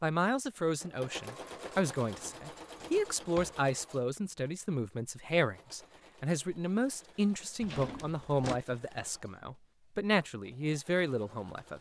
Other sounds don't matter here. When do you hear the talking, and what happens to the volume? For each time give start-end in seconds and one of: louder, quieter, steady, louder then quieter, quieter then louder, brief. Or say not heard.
0.0-11.7 steady.